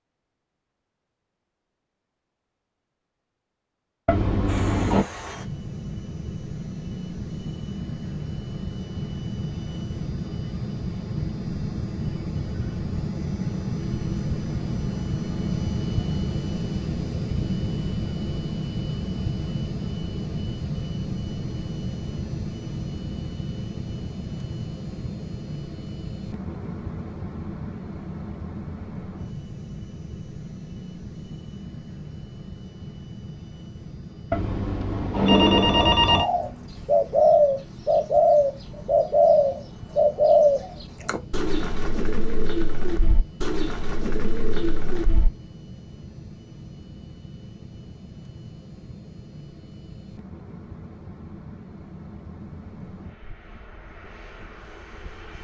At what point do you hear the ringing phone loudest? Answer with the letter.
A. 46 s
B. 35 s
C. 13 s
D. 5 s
B.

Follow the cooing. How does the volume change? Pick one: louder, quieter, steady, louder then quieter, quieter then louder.
quieter.